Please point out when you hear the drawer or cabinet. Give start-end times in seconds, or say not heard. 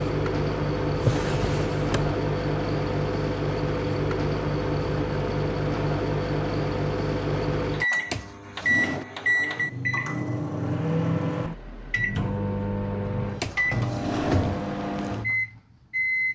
0.9-2.1, 8.1-9.1, 13.4-14.7.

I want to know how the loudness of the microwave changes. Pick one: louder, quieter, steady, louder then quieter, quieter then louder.
steady.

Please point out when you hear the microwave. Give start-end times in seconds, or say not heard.
0.0-16.3.